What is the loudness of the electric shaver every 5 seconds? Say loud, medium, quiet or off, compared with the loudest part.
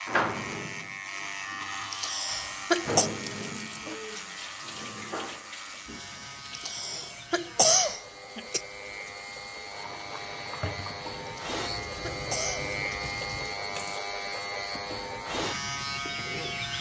loud, medium, loud, loud.